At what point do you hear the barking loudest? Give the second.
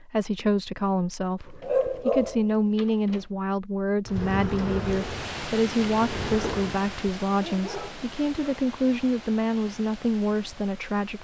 2 s.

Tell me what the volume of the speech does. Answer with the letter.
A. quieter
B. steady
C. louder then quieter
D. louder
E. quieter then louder
B.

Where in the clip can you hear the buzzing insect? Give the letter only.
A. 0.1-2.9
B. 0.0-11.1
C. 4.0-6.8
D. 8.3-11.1
C.